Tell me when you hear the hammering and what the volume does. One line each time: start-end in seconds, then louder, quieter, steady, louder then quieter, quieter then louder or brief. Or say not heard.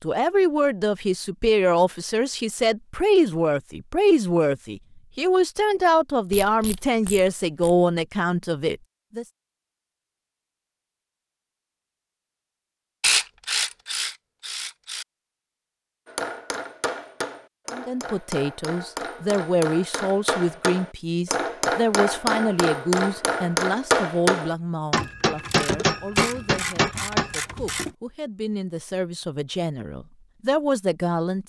16.1-27.4 louder.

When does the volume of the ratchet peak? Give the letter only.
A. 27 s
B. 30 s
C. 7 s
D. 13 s
D.